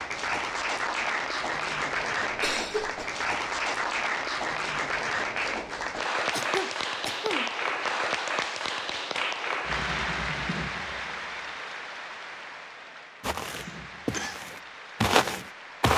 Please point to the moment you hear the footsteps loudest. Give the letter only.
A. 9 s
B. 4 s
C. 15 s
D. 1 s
C.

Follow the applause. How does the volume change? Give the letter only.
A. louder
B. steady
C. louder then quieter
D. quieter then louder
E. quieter
E.